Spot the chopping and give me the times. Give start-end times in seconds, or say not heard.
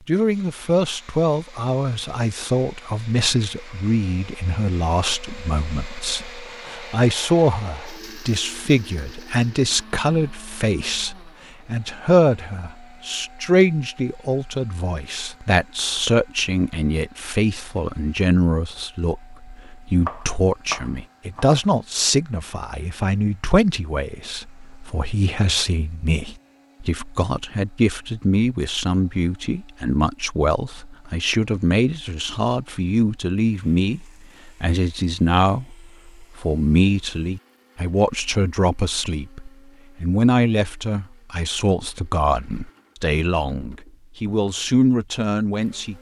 20.0-21.6.